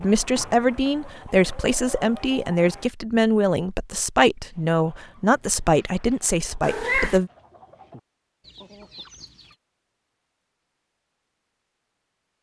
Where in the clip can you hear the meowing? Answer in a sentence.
The meowing can be heard from 6.6 to 7.2 s.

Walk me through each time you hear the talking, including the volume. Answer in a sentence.
The talking can be heard from 0.0 to 7.3 s, at a steady volume.